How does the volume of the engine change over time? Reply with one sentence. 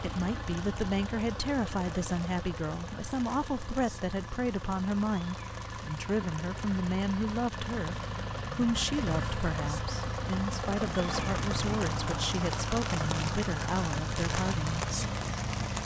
The volume of the engine goes up.